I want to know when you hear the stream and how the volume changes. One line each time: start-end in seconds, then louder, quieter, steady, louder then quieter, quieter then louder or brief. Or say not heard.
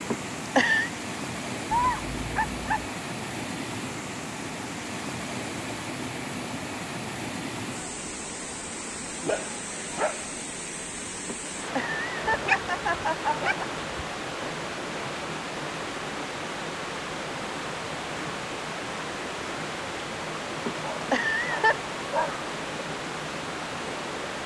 0.0-24.4 steady.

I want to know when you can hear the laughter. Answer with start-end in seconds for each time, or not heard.
0.1-0.9, 11.2-13.6, 20.6-21.8.